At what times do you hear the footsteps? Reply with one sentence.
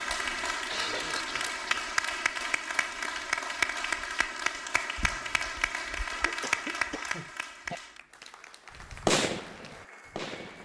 You can't hear the footsteps here.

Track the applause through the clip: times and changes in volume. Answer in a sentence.
You can hear the applause from 0.0 to 10.6 s, getting quieter.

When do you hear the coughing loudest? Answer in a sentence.
The volume of the coughing peaks at 1 second.